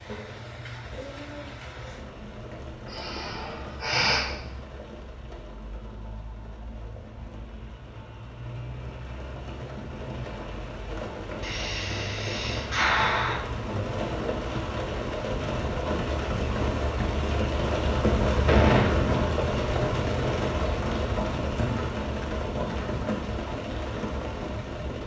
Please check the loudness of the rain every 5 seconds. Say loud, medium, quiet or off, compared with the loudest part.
quiet, quiet, medium, loud, loud.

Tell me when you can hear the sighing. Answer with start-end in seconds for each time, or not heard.
2.9-4.2, 11.4-13.4, 18.4-19.5.